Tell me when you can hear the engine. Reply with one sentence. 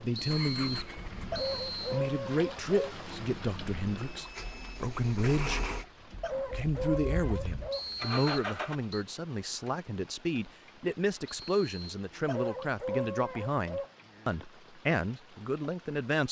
The engine can be heard from 0.0 to 8.8 s.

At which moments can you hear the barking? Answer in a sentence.
You can hear the barking from 1.3 to 2.9 s, from 6.2 to 7.8 s and from 12.2 to 13.9 s.